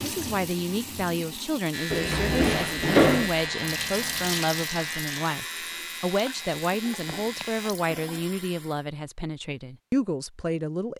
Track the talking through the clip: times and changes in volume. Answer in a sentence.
The talking can be heard from 0.0 to 10.9 s, at a steady volume.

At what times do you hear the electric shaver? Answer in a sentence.
You can hear the electric shaver from 1.7 to 7.7 s.